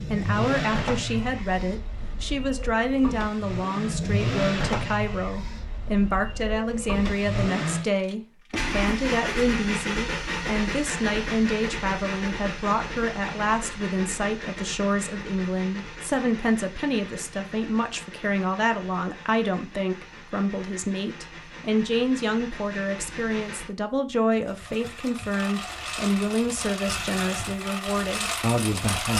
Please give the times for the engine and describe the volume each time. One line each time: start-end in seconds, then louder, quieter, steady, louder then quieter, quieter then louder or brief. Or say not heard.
0.0-29.1 quieter then louder.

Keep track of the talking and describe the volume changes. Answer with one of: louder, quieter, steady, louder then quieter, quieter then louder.
steady.